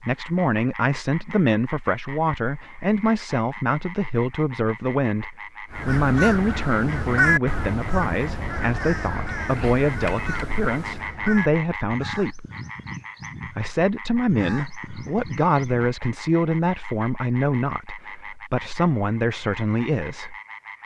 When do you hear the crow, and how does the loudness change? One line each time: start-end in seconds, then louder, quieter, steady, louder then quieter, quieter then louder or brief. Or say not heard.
5.7-15.9 quieter.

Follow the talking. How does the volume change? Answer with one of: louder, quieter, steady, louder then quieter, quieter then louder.
steady.